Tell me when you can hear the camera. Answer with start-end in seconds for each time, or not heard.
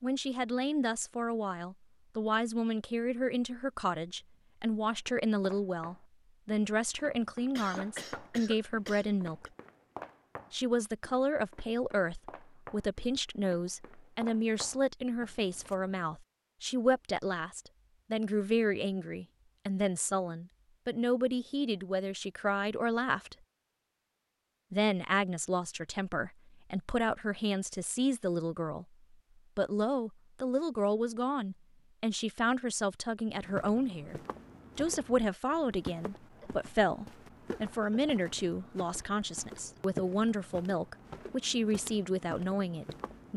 not heard.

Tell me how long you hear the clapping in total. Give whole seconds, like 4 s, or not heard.
not heard.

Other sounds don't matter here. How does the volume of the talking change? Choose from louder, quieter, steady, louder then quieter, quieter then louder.
steady.